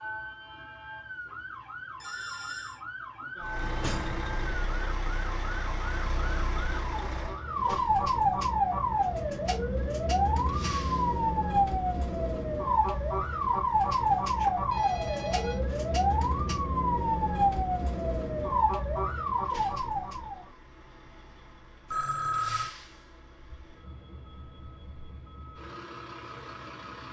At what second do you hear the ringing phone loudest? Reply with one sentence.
The loudest moment of the ringing phone is at 22 seconds.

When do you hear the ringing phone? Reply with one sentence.
The ringing phone can be heard from 2.0 to 2.8 s, from 14.3 to 15.6 s and from 21.9 to 22.8 s.